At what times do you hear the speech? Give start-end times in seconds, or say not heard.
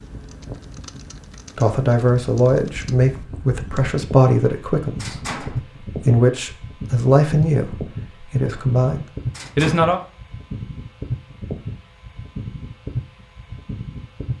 1.6-10.0.